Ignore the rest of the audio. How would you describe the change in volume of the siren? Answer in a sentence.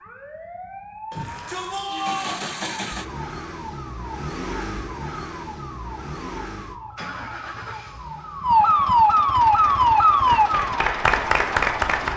The loudness of the siren goes up.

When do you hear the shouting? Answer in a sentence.
The shouting can be heard from 1.1 to 2.5 s.